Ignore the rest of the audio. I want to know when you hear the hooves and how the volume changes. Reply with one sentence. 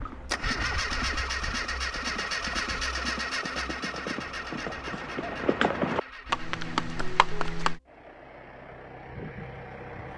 The hooves can be heard from 0.0 to 7.8 s, getting louder.